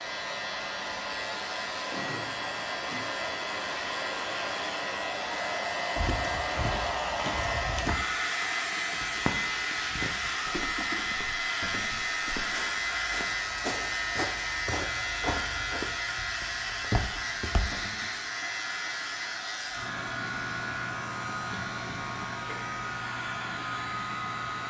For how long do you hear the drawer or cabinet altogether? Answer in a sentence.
You can hear the drawer or cabinet for 2 seconds altogether.